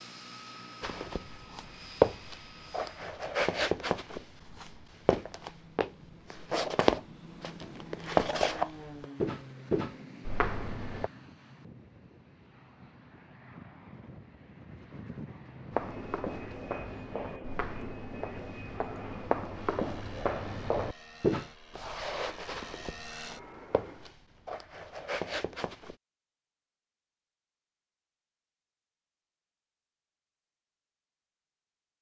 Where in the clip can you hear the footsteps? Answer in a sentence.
You can hear the footsteps from 0.8 to 11.1 s and from 15.7 to 25.9 s.